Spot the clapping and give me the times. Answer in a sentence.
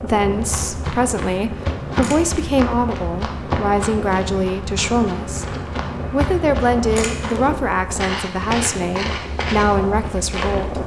You can't hear the clapping here.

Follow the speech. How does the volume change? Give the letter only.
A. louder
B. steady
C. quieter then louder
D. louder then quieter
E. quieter
B.